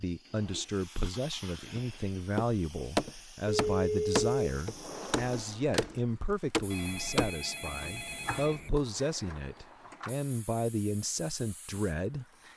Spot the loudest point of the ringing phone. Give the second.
4 s.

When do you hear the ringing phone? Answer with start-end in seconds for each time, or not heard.
3.5-4.5, 6.7-8.7.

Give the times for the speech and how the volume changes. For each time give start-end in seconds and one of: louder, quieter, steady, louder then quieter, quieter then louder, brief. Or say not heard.
0.0-12.2 steady.